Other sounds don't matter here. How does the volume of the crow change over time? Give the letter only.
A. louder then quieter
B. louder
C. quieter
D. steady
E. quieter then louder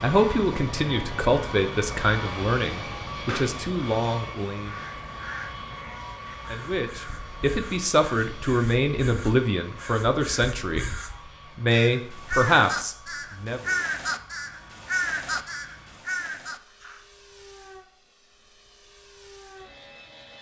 B.